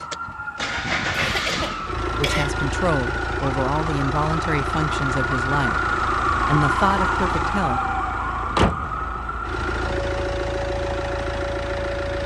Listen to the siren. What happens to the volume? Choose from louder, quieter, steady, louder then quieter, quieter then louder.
louder then quieter.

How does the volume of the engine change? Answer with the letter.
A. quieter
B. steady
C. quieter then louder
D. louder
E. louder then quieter
B.